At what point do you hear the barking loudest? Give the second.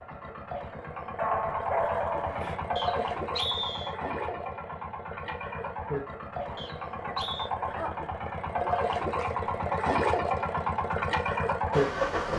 2 s.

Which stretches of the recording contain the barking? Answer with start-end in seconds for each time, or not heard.
1.1-3.1, 6.5-8.8.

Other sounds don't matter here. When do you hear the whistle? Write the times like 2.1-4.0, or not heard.
2.8-4.0, 6.5-7.5.